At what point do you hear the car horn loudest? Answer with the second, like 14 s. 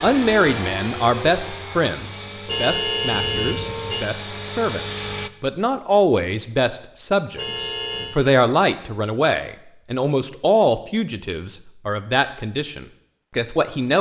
3 s.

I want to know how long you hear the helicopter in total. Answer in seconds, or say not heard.
5 s.